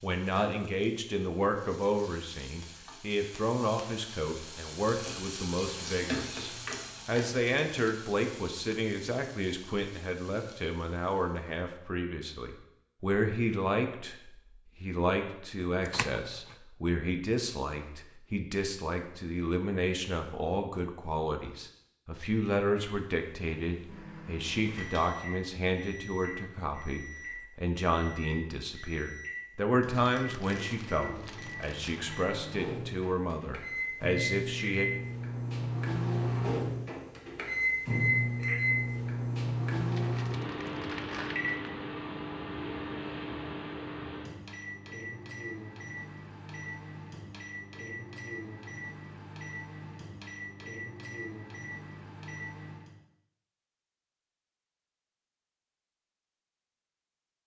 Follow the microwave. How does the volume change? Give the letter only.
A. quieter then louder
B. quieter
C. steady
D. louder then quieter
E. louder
D.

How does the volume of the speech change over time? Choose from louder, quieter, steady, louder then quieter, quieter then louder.
steady.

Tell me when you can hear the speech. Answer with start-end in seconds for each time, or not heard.
0.0-34.9.